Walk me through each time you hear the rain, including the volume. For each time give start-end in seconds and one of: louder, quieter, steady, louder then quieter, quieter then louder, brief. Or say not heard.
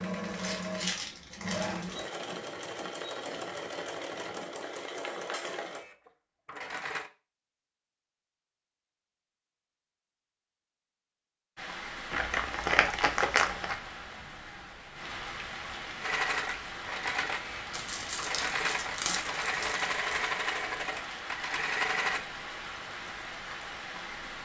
11.6-24.4 steady.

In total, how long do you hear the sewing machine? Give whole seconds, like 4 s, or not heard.
13 s.